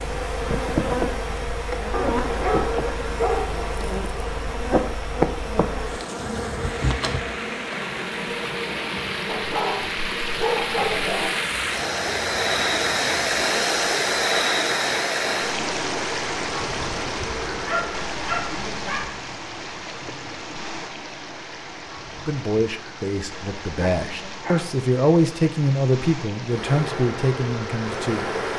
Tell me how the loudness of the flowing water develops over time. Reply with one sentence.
The volume of the flowing water goes up, then down.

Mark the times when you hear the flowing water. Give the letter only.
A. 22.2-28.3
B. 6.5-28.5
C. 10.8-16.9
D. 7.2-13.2
B.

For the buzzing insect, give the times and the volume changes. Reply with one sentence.
The buzzing insect can be heard from 0.0 to 17.9 s, getting quieter; and briefly from 26.4 to 28.5 s.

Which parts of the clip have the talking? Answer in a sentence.
The talking can be heard from 22.2 to 28.3 s.